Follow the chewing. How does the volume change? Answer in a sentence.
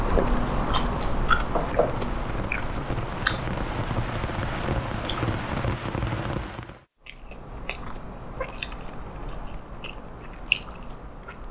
The loudness of the chewing goes down, then up.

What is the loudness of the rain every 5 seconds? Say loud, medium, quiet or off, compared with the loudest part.
loud, loud, off.